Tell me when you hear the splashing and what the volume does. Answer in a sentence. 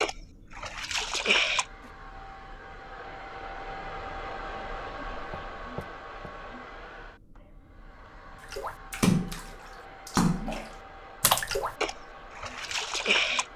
You can hear the splashing briefly from 0.0 to 1.6 s; and from 8.5 to 13.4 s, getting quieter.